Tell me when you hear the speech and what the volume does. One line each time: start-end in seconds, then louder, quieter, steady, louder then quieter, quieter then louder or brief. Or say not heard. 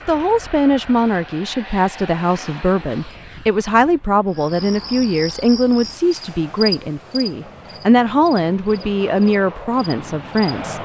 0.1-10.7 steady.